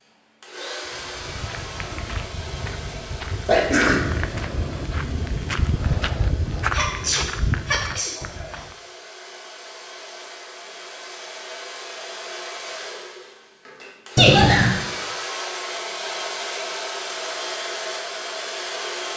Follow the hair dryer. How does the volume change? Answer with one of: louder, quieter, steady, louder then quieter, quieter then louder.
quieter then louder.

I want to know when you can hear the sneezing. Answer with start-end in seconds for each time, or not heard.
3.5-4.1, 6.7-8.7, 14.2-14.8.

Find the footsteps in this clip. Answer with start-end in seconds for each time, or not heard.
0.8-8.8.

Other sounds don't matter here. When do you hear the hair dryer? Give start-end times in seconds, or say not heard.
0.0-19.1.